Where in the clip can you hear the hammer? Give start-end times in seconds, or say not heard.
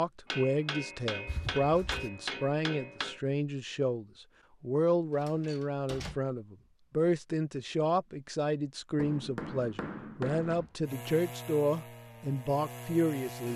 0.3-3.2, 8.9-10.7.